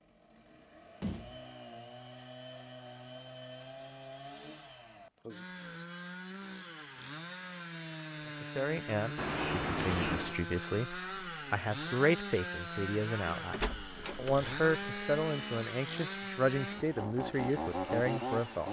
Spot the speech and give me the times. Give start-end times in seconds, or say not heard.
8.4-18.6.